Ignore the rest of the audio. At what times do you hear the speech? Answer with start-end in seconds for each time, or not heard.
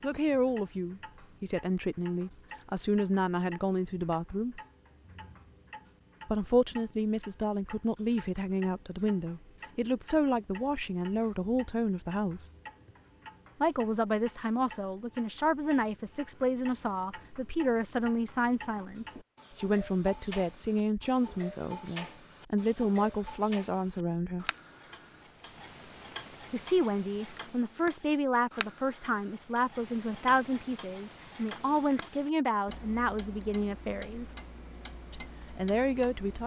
0.0-4.6, 6.2-12.4, 13.6-24.4, 26.5-34.4, 35.1-36.4.